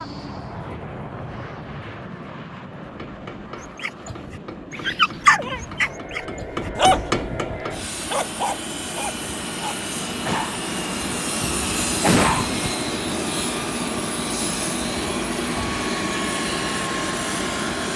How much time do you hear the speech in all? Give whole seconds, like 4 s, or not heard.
not heard.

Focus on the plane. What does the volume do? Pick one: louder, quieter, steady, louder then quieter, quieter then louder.
louder.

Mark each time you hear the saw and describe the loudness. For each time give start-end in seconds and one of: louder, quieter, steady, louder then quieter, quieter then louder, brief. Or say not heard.
not heard.